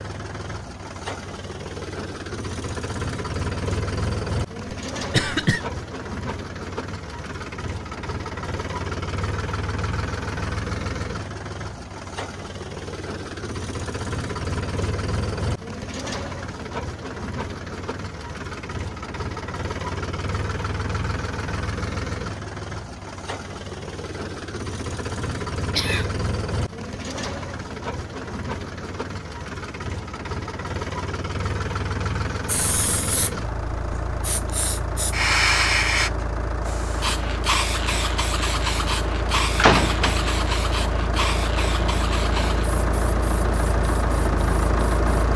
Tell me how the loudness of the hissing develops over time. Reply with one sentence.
The loudness of the hissing goes up, then down.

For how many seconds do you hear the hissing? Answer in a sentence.
You can hear the hissing for 13 seconds altogether.